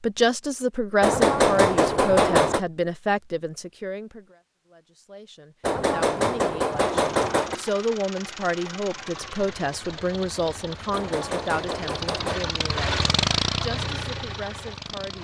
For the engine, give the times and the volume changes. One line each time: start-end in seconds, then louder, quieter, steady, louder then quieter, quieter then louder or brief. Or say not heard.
6.7-15.1 louder.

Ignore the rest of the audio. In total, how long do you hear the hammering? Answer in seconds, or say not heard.
5 s.